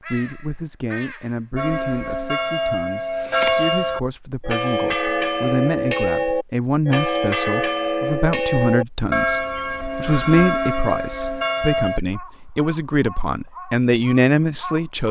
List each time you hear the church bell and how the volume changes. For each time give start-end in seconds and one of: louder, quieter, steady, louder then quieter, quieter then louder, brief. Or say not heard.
1.6-12.0 steady.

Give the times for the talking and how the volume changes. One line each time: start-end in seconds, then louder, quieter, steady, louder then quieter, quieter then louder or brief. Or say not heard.
0.1-15.0 louder.